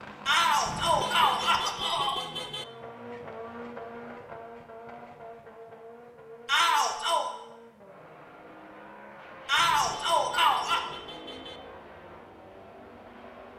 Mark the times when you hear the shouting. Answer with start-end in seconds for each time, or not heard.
0.2-2.2, 6.5-7.2, 9.4-10.8.